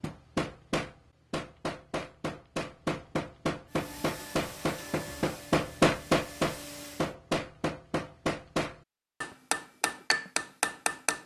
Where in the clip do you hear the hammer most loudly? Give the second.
6 s.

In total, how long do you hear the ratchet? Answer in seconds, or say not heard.
not heard.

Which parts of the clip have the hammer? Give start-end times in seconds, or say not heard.
0.0-11.2.